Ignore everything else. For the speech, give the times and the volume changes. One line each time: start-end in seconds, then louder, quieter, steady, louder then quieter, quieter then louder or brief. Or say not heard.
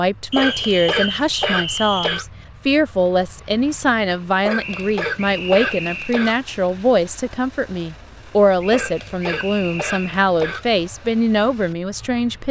0.0-12.4 steady.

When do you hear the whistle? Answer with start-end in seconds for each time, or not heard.
0.3-2.2, 4.5-6.2, 8.6-10.2.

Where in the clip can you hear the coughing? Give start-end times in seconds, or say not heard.
0.3-2.2, 4.5-6.4, 8.7-10.7.